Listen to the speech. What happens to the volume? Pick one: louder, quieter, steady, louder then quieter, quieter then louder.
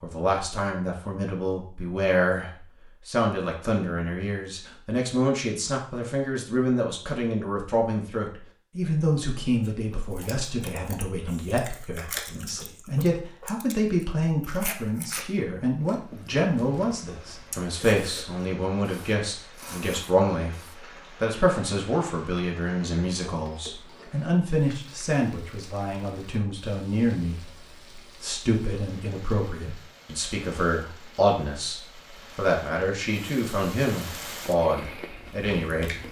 steady.